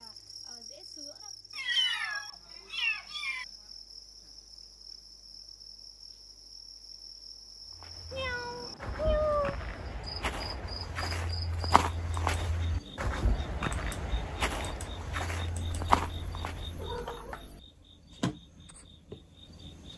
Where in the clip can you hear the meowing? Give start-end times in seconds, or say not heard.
1.6-3.5, 8.1-9.6, 15.6-17.6.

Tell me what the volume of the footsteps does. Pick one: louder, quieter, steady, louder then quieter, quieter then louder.
louder.